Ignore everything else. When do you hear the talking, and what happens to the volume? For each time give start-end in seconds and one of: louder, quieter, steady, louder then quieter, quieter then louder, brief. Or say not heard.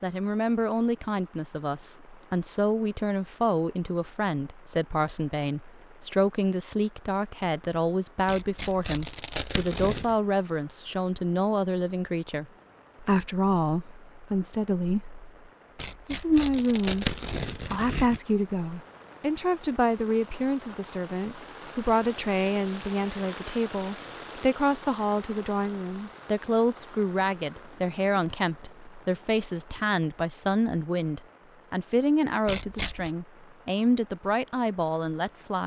0.0-15.2 steady
16.1-17.1 brief
17.7-35.6 steady.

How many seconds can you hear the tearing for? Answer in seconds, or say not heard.
5 s.